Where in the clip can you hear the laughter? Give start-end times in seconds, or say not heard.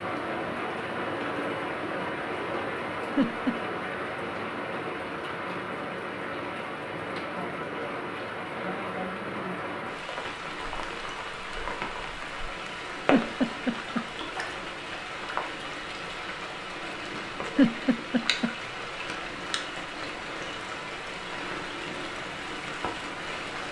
3.1-3.6, 13.1-14.1, 17.6-18.5.